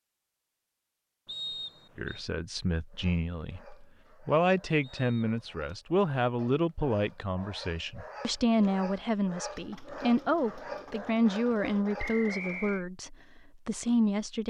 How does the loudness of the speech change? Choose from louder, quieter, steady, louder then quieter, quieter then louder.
steady.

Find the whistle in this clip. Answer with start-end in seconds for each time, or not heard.
1.2-2.2, 4.8-5.5, 11.9-12.8.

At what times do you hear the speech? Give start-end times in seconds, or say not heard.
1.9-14.4.